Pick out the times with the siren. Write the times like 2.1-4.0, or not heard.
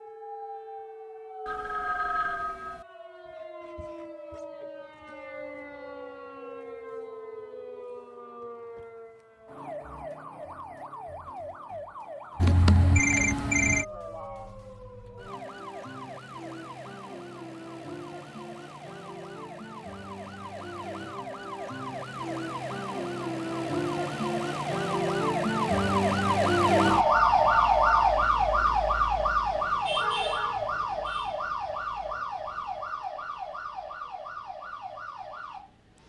0.0-36.0.